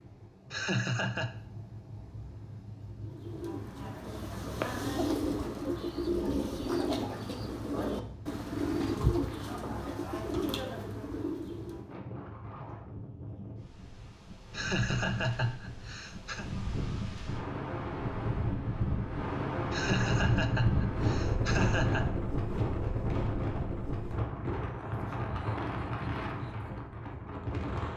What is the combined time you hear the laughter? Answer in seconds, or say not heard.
5 s.